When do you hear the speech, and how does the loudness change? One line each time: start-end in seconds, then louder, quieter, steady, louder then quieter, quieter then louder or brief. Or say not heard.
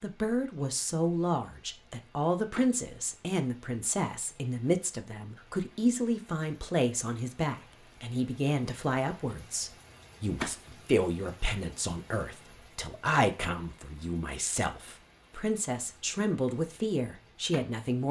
0.0-18.0 steady.